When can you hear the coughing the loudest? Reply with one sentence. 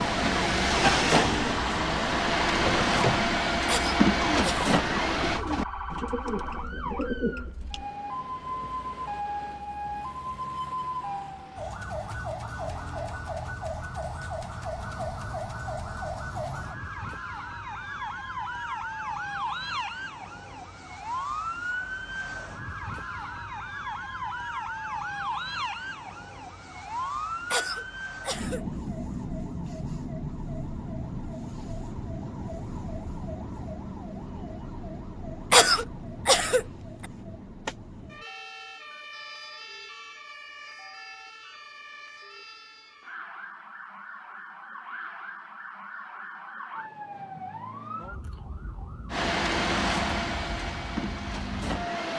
The volume of the coughing peaks at 36 seconds.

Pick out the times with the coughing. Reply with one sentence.
You can hear the coughing from 3.6 to 4.7 s, from 27.5 to 28.6 s and from 35.5 to 37.0 s.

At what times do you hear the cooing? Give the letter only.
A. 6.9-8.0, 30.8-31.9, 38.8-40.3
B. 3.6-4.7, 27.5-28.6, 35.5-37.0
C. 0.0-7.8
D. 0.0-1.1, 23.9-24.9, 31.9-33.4
C.